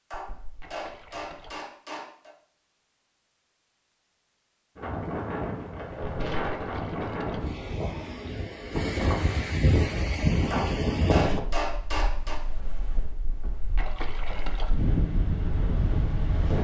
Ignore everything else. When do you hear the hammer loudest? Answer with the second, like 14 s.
11 s.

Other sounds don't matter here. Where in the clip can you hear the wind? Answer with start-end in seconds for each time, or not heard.
4.8-16.5.